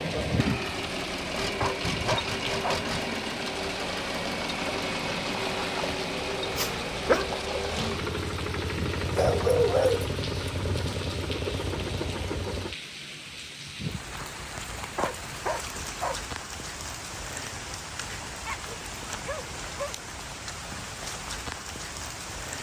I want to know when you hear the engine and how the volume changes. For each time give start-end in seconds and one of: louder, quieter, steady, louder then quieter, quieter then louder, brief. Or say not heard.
0.0-12.8 steady.